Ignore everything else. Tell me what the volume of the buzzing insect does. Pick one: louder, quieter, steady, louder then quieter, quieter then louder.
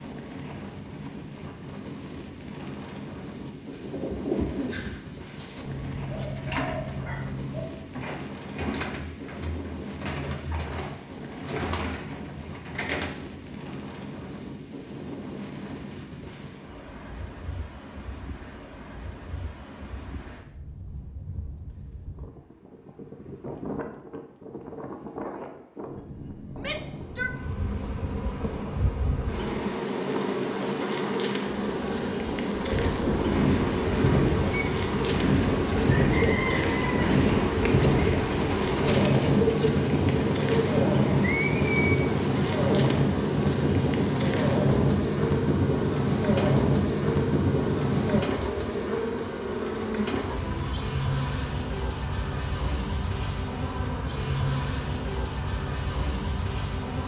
steady.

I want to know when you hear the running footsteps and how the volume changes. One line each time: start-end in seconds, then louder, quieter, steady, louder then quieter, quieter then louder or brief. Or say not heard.
not heard.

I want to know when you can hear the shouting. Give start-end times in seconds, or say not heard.
26.6-27.4.